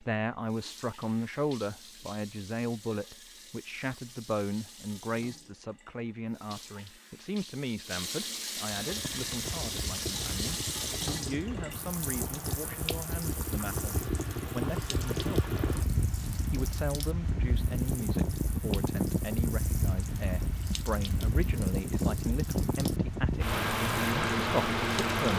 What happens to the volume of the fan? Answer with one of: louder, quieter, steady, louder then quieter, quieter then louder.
louder.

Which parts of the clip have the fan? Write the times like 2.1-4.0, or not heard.
8.8-25.3.